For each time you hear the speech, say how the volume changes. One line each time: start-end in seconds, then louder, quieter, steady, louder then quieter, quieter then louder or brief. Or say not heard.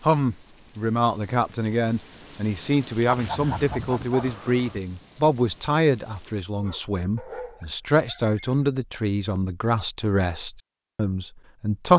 0.0-11.9 steady.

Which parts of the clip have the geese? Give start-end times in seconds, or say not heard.
3.0-4.8.